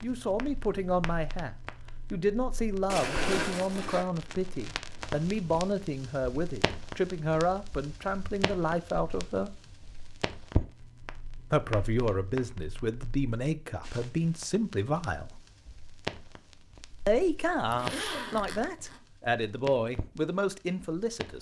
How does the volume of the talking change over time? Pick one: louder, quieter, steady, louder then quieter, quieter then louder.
steady.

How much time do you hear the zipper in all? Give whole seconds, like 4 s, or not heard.
3 s.